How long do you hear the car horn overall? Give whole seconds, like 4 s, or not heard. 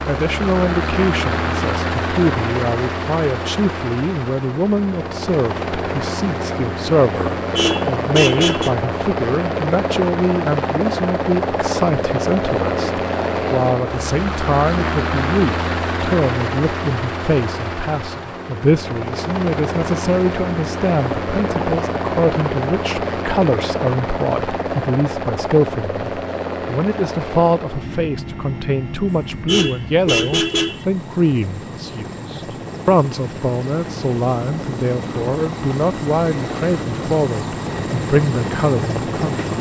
3 s.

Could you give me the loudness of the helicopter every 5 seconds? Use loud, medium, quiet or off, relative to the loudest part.
loud, loud, loud, loud, loud, medium, medium, loud.